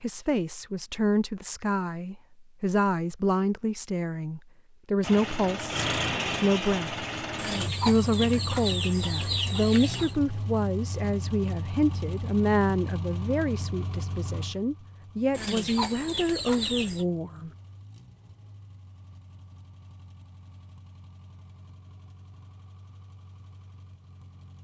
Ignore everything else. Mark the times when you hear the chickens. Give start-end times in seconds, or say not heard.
7.3-10.2, 15.3-17.1.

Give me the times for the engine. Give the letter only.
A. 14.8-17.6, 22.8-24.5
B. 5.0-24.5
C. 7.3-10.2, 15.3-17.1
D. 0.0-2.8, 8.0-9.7
B.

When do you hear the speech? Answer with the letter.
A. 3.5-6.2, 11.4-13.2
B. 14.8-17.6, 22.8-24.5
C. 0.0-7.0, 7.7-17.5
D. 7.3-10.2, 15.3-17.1
C.